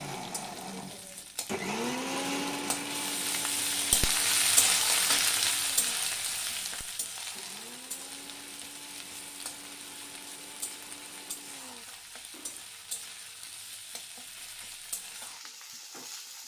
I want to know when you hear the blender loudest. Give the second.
2 s.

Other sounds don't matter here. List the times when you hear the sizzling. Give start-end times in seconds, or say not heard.
0.1-16.4.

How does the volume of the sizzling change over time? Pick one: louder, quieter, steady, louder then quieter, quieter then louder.
louder then quieter.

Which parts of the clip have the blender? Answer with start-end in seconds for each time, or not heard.
0.0-12.7.